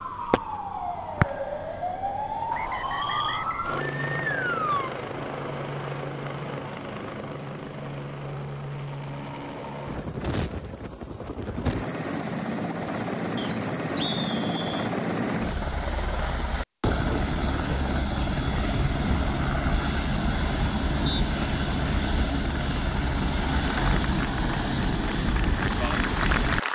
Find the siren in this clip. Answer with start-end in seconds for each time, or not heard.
0.0-4.9.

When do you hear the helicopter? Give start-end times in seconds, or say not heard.
3.6-26.6.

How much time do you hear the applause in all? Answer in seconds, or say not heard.
3 s.